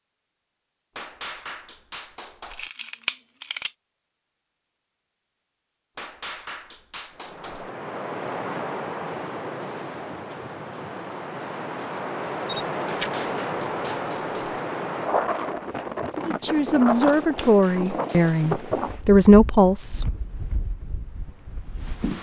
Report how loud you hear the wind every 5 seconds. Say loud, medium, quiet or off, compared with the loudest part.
off, loud, loud, loud, medium.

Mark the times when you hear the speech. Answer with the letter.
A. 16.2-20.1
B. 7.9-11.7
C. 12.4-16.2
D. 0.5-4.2
A.